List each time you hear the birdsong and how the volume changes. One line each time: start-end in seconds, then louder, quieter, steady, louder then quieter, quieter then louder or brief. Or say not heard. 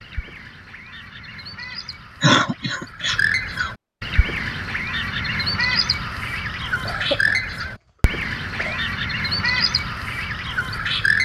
0.0-11.2 louder.